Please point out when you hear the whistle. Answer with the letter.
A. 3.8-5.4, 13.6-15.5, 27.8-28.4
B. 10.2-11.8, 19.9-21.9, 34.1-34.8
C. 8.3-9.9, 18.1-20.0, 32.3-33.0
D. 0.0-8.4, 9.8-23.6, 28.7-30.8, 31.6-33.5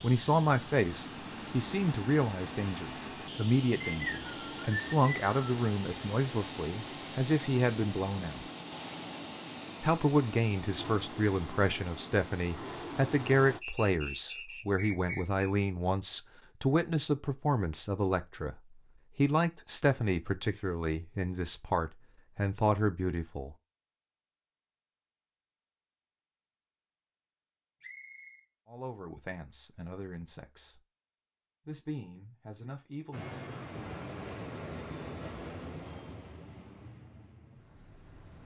A.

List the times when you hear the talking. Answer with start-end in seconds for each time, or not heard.
0.0-8.4, 9.8-23.6, 28.7-30.8, 31.6-33.5.